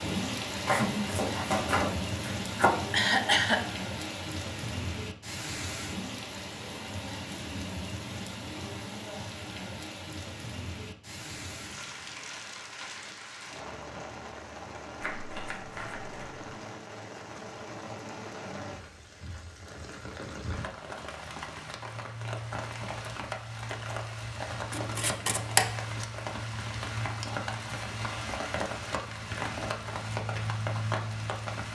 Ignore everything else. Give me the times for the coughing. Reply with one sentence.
You can hear the coughing from 2.9 to 3.6 s.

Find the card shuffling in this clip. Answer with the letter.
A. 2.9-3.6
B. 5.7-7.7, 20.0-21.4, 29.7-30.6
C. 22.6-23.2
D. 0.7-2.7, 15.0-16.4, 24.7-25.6
D.